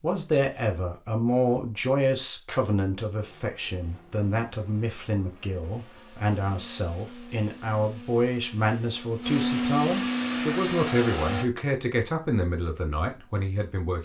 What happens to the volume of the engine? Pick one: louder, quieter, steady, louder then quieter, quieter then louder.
louder.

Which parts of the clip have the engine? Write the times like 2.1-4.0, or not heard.
3.2-11.4.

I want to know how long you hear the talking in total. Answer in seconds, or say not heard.
14 s.